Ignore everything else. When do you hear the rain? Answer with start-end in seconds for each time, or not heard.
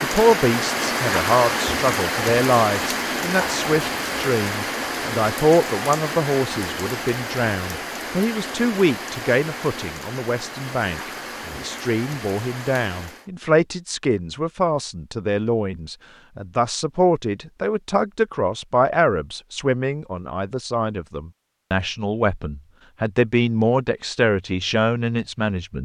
0.0-13.3.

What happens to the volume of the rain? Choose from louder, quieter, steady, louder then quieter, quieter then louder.
quieter.